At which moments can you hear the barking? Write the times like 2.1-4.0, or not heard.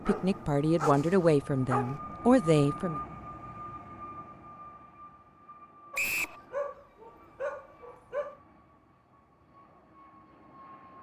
0.1-2.0, 5.9-8.4.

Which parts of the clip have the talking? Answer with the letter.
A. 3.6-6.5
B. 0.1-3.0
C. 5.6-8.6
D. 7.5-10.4
B.